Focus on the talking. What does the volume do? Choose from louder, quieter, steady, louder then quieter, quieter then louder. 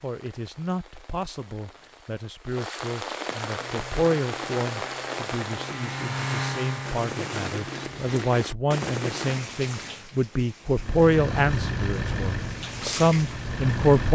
louder.